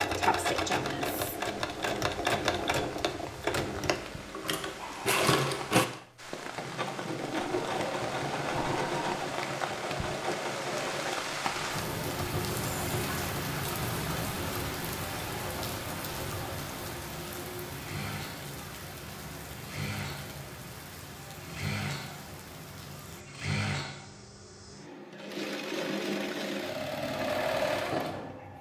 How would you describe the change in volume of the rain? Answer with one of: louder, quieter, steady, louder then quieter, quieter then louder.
louder then quieter.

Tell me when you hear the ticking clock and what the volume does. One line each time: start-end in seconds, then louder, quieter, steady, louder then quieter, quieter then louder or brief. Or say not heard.
not heard.